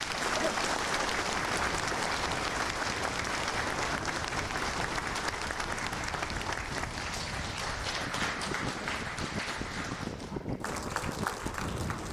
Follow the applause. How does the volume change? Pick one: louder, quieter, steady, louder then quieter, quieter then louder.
quieter.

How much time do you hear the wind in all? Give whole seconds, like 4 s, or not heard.
12 s.